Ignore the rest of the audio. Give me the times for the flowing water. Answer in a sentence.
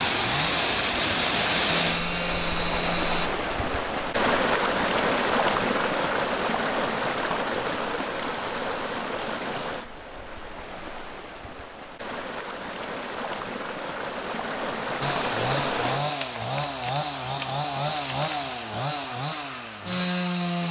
The flowing water can be heard from 0.0 to 16.1 s.